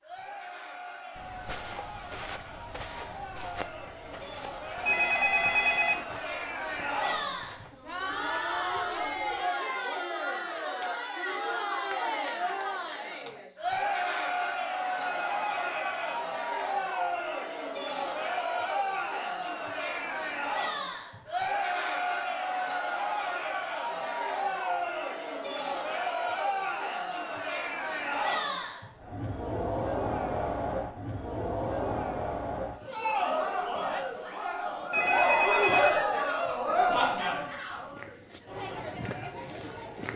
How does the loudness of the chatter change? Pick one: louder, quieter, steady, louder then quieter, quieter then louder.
louder.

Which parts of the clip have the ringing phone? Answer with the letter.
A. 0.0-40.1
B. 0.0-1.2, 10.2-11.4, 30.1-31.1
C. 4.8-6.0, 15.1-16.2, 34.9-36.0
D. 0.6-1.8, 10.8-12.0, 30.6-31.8
C.